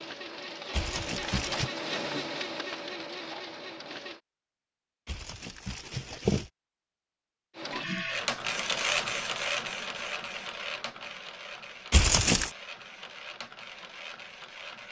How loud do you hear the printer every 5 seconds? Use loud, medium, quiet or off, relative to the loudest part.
medium, loud, medium.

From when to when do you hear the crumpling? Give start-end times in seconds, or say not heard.
0.7-1.7, 5.0-6.5, 11.9-12.5.